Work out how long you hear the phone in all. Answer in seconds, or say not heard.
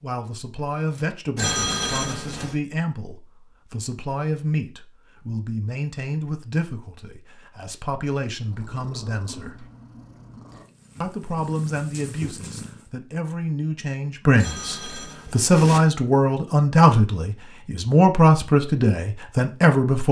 3 s.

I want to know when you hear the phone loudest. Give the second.
2 s.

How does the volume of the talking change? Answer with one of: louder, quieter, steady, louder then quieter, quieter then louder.
louder.